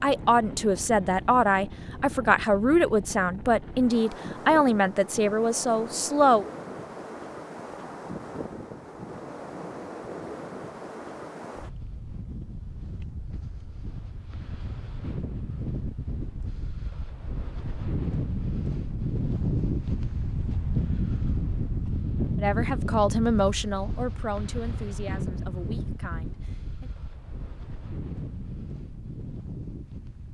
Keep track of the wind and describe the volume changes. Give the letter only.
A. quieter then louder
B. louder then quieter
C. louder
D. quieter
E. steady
B.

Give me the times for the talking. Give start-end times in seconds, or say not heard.
0.0-6.5, 22.4-26.9.